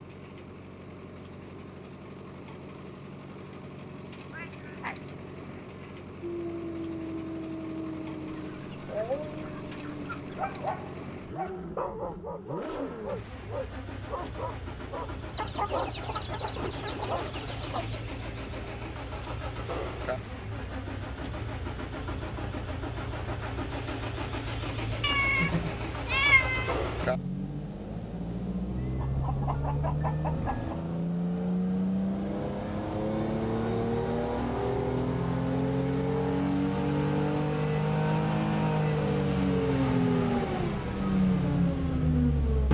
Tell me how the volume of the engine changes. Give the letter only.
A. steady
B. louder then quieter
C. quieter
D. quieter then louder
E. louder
E.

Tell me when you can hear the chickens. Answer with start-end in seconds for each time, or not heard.
8.2-10.6, 15.3-18.0, 28.9-30.8.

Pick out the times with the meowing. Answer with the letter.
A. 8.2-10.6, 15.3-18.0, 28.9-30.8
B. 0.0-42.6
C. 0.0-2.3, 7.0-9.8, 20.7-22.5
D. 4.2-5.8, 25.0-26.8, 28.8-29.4
D.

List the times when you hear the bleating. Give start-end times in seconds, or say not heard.
not heard.